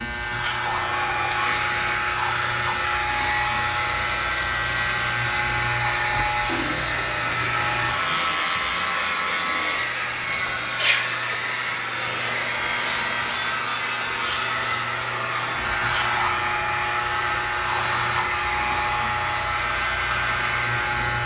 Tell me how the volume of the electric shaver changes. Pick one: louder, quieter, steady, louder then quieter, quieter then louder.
steady.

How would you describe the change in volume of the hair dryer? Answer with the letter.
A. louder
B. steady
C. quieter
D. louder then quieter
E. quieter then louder
B.